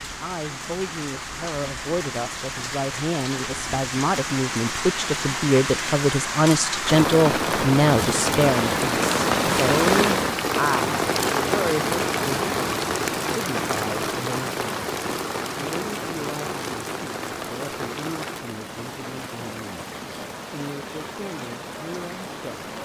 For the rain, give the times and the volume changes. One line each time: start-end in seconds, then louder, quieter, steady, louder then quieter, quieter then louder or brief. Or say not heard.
0.0-22.8 louder then quieter.